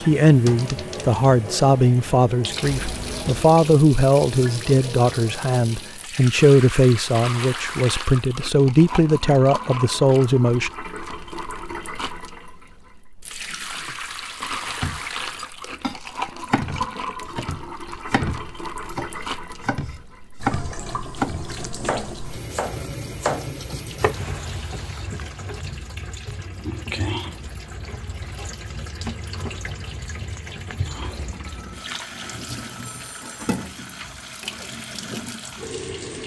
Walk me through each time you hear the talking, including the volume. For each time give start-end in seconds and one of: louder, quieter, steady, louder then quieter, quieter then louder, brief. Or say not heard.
0.0-10.7 steady.